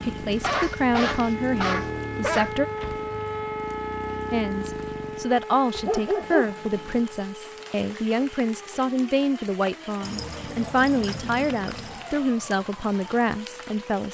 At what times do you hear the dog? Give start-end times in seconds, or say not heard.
0.3-2.5, 5.7-7.0, 10.0-12.1.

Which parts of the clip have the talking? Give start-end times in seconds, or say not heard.
0.0-2.6, 4.3-14.0.